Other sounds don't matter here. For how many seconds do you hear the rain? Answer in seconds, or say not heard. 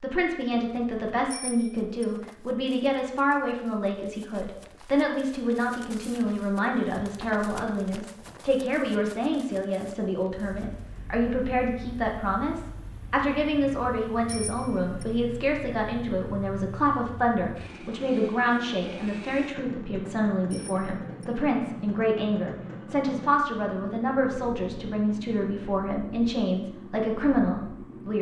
not heard.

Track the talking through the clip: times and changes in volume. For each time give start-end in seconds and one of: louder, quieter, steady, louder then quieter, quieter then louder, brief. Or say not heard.
0.0-28.1 steady.